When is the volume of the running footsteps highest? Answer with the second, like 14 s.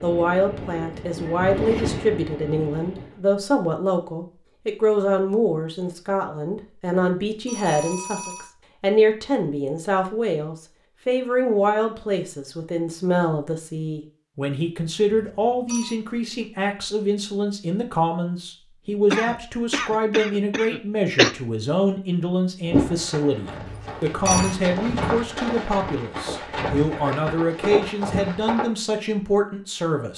23 s.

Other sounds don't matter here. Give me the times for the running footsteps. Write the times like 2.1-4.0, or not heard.
22.6-28.7.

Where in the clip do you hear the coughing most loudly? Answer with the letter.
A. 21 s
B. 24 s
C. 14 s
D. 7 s
A.